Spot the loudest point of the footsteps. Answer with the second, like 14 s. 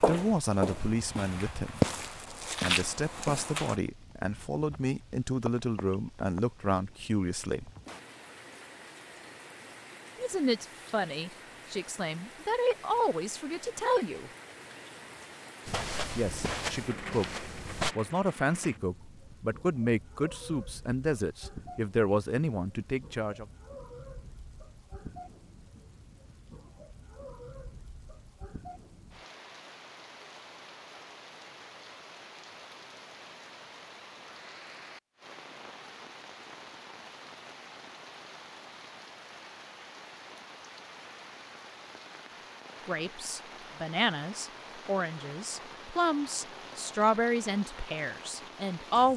2 s.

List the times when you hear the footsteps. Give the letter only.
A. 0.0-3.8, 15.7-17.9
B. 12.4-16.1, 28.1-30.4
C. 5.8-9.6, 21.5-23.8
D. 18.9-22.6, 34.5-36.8
A.